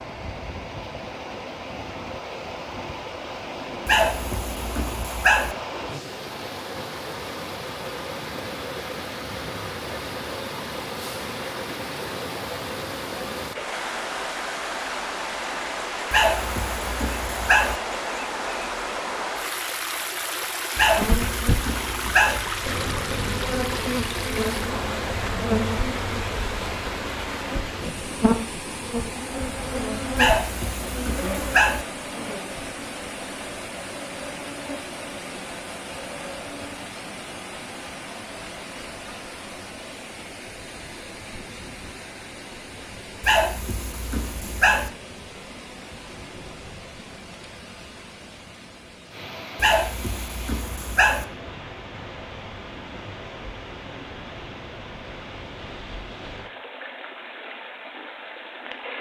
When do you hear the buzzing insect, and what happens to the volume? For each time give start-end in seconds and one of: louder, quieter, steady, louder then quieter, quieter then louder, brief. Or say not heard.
20.9-36.9 quieter.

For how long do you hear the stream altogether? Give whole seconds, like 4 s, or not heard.
59 s.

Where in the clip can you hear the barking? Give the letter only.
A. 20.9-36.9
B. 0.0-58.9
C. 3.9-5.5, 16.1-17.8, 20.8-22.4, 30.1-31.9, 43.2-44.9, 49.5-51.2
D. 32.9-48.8
C.